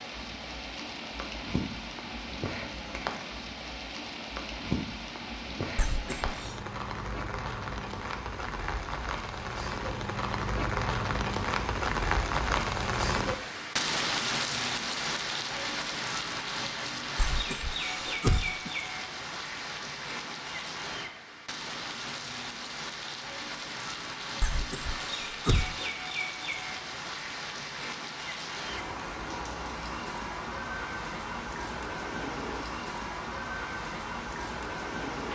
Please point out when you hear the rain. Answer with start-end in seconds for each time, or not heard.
0.0-35.3.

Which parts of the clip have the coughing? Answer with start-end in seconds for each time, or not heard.
5.8-6.5, 17.1-18.7, 24.4-25.8.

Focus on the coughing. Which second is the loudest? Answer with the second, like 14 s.
18 s.